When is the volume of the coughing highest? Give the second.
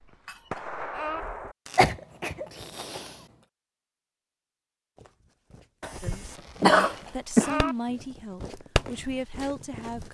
7 s.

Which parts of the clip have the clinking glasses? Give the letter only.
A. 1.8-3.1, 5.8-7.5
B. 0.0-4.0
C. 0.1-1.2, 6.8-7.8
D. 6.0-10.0
C.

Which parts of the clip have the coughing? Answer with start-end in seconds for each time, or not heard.
1.8-3.1, 5.8-7.5.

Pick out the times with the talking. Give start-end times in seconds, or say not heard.
6.0-10.0.